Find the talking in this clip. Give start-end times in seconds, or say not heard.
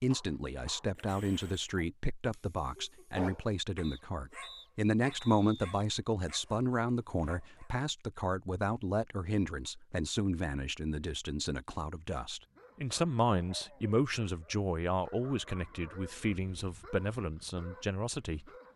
0.0-18.5.